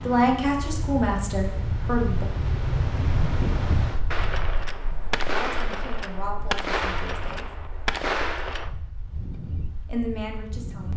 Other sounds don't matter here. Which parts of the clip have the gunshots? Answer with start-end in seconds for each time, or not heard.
4.1-8.7.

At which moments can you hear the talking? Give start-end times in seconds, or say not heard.
0.0-2.2, 5.3-7.5, 9.8-10.9.